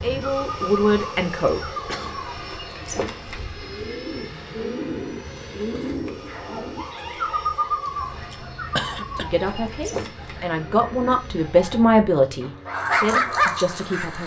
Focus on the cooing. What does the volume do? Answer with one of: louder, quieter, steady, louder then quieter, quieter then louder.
louder then quieter.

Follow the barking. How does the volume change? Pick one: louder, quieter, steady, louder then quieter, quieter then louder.
louder.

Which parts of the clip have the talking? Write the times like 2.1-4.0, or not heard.
0.0-1.6, 9.2-14.2.